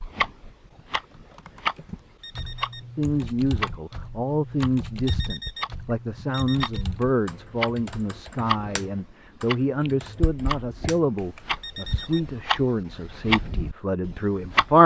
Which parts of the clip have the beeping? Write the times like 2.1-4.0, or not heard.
2.2-2.9, 5.0-6.8, 11.6-12.2.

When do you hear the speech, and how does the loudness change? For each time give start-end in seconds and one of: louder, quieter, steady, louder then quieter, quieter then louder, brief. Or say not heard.
3.0-14.8 steady.